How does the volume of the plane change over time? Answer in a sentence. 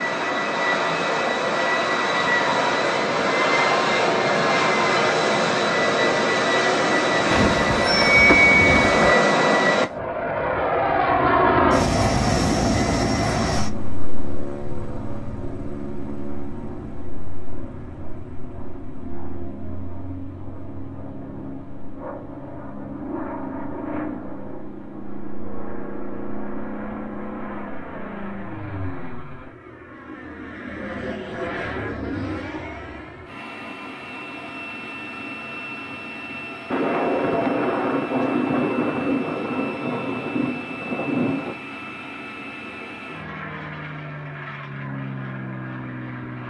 The loudness of the plane goes down.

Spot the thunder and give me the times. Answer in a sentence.
The thunder can be heard from 36.7 to 41.5 s.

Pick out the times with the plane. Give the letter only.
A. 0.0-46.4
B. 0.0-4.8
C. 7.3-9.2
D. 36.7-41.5
A.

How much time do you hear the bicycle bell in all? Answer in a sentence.
The bicycle bell can be heard for 2 seconds in total.